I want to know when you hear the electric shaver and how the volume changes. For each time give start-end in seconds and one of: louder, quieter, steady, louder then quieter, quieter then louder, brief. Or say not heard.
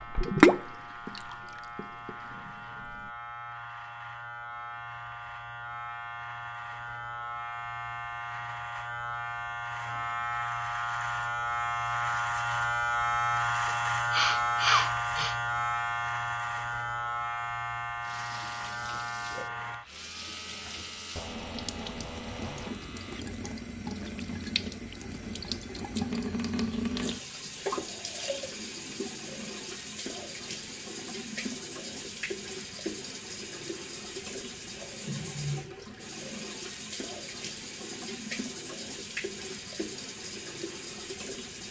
0.0-23.2 louder then quieter.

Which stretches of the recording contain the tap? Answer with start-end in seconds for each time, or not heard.
0.0-3.1, 18.0-41.6.